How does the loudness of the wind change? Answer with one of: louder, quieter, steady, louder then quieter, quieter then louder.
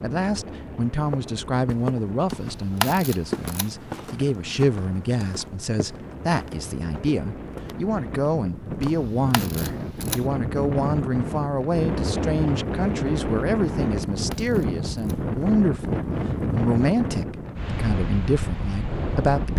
louder.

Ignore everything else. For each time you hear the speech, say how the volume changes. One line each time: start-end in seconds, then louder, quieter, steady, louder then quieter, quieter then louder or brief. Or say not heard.
0.0-19.5 steady.